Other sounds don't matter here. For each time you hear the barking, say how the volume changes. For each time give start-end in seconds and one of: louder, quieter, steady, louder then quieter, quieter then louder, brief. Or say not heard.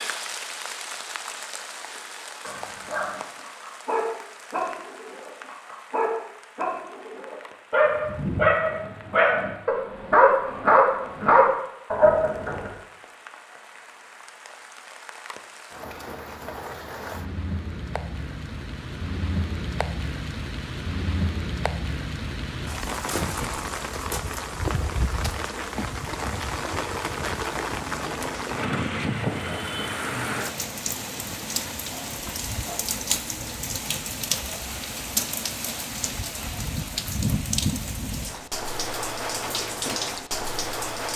2.4-12.7 louder.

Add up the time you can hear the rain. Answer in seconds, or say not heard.
41 s.